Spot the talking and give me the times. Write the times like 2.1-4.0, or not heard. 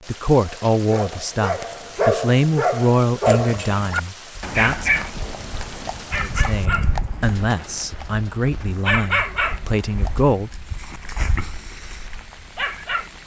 0.1-5.0, 6.2-11.2.